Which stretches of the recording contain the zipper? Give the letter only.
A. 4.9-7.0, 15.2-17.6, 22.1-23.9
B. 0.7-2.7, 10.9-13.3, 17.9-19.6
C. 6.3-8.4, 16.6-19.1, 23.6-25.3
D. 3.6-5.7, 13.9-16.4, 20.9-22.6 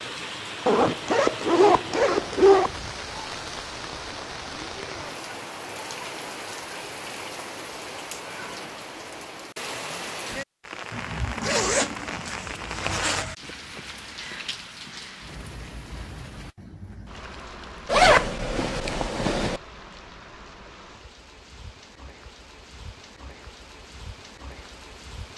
B.